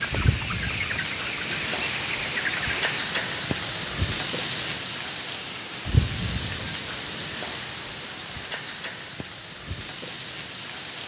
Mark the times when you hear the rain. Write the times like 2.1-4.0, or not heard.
0.0-11.0.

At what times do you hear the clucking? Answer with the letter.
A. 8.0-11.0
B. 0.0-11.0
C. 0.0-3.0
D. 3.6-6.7
C.